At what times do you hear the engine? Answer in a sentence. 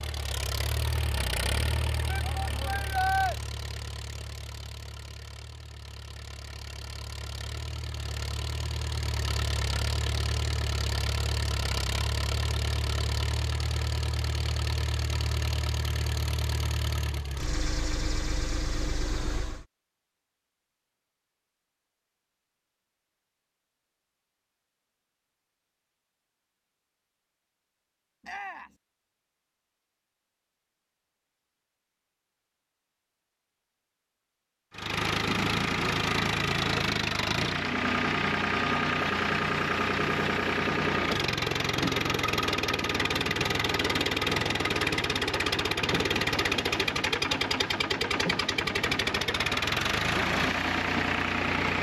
The engine can be heard from 0.0 to 19.6 s and from 34.7 to 51.7 s.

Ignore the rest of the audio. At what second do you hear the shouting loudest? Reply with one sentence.
The volume of the shouting peaks at 3 seconds.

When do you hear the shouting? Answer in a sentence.
You can hear the shouting from 2.0 to 3.4 s and from 28.2 to 28.8 s.